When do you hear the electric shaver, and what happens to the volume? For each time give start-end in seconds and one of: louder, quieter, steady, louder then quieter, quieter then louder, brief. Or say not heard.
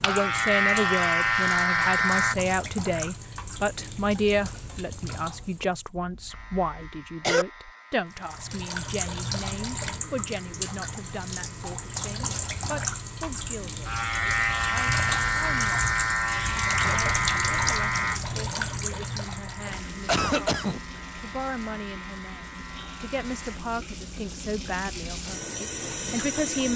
0.0-2.4 brief
6.3-23.6 louder then quieter.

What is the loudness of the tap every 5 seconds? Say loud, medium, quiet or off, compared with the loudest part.
medium, loud, loud, loud, medium, loud.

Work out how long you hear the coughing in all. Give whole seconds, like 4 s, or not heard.
2 s.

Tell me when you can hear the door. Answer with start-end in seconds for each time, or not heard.
not heard.